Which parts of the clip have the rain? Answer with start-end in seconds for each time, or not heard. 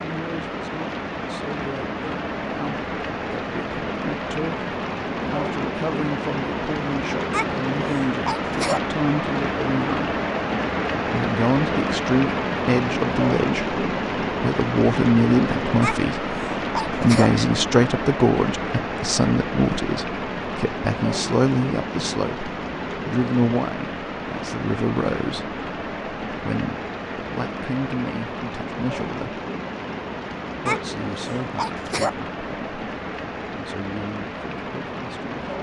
0.0-35.5.